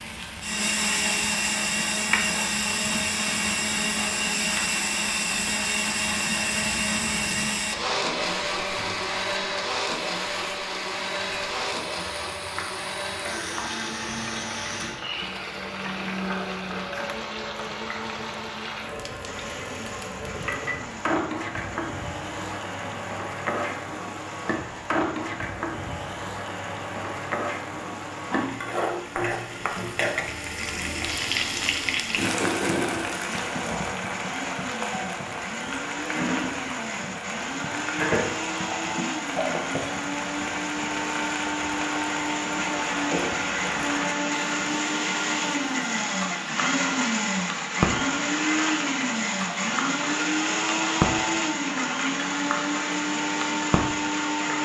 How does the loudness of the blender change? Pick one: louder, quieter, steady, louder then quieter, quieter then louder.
quieter then louder.